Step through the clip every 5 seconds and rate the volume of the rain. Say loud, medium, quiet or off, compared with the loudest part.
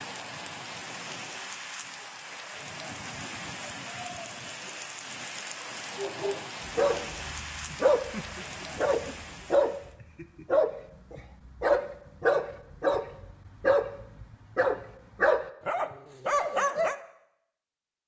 loud, loud, off, off.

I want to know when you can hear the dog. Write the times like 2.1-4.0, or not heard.
6.0-16.9.